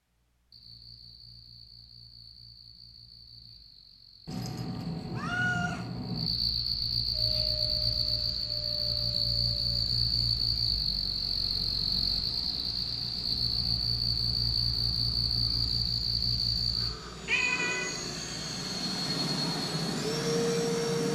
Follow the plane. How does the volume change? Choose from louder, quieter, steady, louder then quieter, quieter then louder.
louder.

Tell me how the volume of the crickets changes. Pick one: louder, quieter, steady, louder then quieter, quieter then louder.
louder.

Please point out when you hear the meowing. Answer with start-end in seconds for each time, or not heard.
4.2-6.3, 16.8-17.9.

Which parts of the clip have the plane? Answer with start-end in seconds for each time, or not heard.
7.1-21.1.